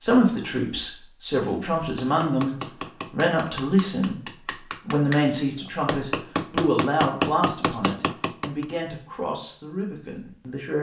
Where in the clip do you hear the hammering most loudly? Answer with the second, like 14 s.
7 s.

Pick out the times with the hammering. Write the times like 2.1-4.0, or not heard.
1.8-8.7.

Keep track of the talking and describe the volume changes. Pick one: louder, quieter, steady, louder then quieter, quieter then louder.
quieter.